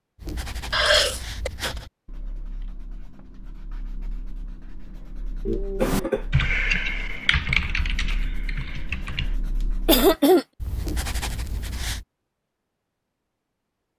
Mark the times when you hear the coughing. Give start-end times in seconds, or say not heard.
0.7-1.5, 5.5-6.2, 9.8-10.4.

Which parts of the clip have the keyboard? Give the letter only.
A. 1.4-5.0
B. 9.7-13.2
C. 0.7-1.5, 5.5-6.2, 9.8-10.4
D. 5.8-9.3
D.